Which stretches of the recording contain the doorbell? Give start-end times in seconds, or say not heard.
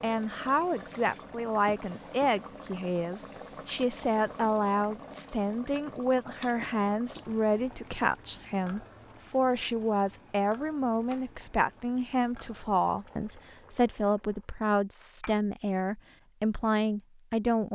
not heard.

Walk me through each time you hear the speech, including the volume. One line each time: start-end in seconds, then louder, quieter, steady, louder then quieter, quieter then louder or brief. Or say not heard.
0.0-17.7 steady.